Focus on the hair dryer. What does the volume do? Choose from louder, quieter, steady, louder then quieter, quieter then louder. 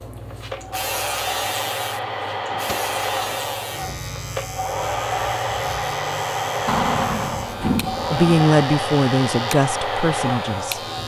steady.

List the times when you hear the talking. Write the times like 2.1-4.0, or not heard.
8.1-10.8.